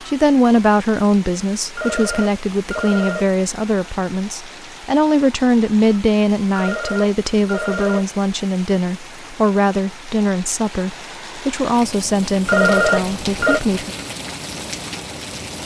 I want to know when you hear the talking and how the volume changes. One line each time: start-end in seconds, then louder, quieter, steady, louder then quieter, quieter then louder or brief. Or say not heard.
0.1-13.9 steady.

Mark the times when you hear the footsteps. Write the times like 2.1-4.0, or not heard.
not heard.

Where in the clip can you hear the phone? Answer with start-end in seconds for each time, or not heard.
1.8-3.4, 6.5-8.2, 12.4-13.6.